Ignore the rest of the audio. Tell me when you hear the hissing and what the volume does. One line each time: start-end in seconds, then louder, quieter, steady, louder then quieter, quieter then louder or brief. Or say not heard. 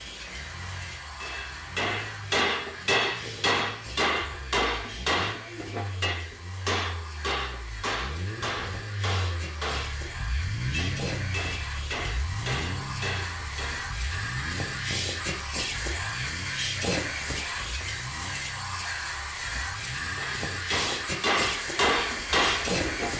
0.0-23.1 louder.